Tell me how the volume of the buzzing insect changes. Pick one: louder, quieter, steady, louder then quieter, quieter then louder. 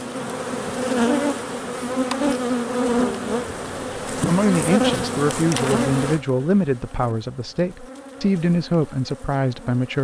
quieter.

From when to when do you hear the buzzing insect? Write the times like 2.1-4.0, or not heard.
0.0-9.9.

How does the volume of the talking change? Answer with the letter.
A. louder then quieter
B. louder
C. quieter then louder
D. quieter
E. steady
E.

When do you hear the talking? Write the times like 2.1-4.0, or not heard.
4.1-9.9.